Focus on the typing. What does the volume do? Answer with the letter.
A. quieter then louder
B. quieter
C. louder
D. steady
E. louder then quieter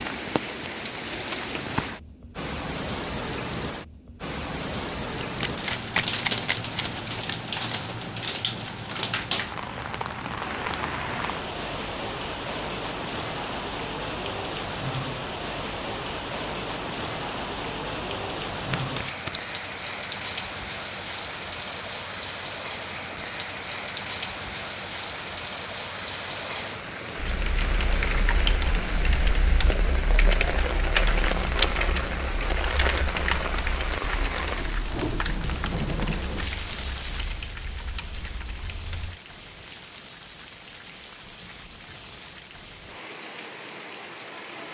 B.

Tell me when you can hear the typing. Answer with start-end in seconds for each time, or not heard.
27.1-39.2.